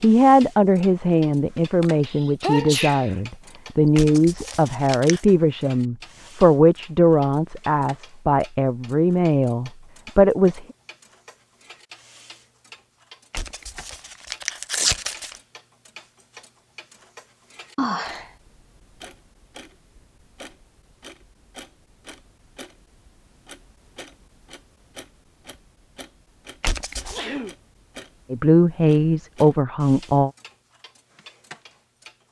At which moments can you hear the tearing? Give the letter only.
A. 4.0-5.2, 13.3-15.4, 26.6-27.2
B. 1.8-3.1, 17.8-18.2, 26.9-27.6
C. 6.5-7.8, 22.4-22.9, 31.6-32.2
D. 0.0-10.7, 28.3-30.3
A.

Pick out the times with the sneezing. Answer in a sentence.
The sneezing can be heard from 1.8 to 3.1 s, from 17.8 to 18.2 s and from 26.9 to 27.6 s.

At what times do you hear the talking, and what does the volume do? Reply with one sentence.
You can hear the talking from 0.0 to 10.7 s, at a steady volume; and briefly from 28.3 to 30.3 s.